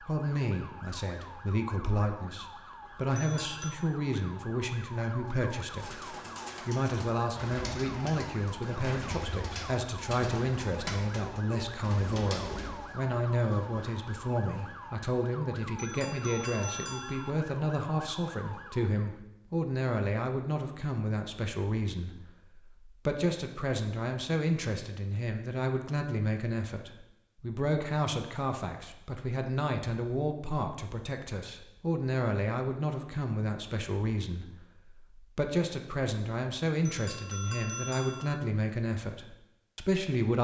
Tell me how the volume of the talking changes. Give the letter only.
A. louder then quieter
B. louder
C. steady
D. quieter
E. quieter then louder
C.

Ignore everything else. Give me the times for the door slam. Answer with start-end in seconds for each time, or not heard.
not heard.